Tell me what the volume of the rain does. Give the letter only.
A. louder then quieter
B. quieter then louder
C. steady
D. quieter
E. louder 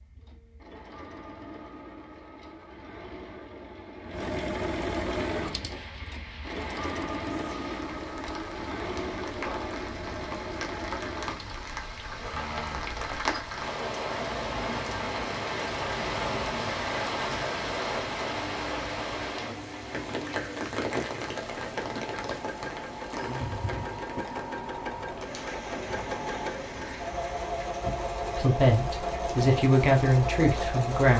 A.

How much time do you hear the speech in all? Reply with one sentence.
You can hear the speech for 3 seconds altogether.